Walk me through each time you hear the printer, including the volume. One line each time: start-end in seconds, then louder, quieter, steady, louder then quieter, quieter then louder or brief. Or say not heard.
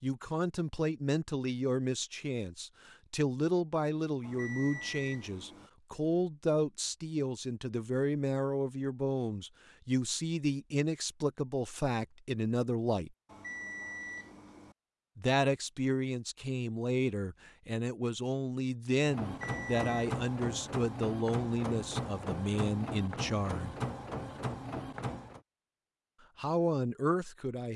19.0-25.4 steady.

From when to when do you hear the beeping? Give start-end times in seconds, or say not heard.
4.2-5.7, 13.2-14.8, 19.2-20.1.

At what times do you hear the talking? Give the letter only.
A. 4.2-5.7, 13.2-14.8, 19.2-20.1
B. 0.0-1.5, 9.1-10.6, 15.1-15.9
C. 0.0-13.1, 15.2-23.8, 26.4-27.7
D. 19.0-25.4
C.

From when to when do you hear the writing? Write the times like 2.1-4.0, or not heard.
not heard.